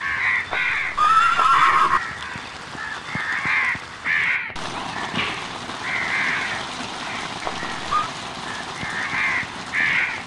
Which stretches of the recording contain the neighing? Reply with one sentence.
The neighing can be heard from 0.5 to 2.0 s and from 7.5 to 8.1 s.